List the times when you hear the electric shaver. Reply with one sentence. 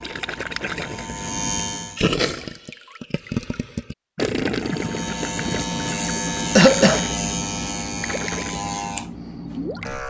The electric shaver can be heard from 0.0 to 2.0 s and from 4.5 to 10.0 s.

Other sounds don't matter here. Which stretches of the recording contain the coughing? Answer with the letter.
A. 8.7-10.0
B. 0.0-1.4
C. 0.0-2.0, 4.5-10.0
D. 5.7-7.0
D.